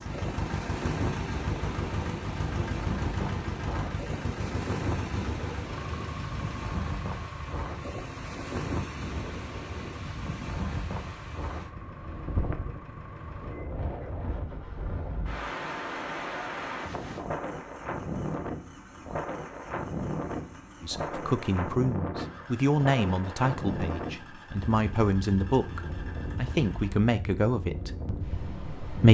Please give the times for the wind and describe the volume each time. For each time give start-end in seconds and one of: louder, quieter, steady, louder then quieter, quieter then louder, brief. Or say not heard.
0.0-29.1 steady.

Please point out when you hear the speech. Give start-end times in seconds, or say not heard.
20.8-29.1.